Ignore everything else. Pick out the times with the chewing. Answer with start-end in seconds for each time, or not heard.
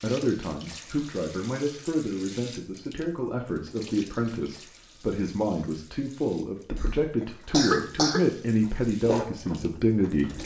8.6-10.4.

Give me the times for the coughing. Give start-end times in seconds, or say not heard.
7.2-8.2.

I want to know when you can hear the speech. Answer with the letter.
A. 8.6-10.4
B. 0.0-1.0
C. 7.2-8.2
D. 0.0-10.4
D.